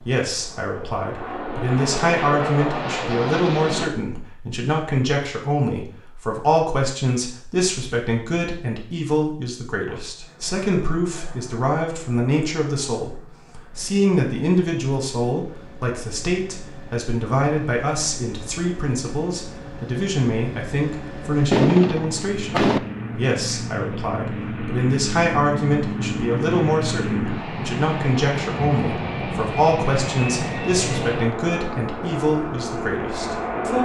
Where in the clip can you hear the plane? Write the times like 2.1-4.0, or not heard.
0.0-3.9, 9.8-33.8.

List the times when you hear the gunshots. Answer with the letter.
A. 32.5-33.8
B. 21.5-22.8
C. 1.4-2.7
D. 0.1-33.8
B.